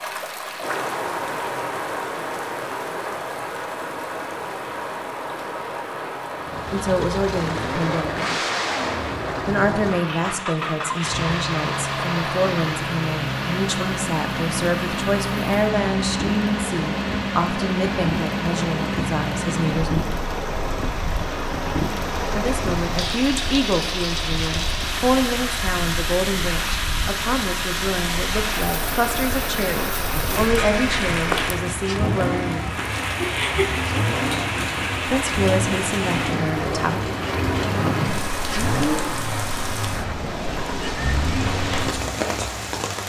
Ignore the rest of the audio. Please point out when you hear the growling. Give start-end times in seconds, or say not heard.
29.7-30.4.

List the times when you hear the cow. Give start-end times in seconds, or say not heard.
not heard.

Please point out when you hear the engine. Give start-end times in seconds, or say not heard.
6.3-43.0.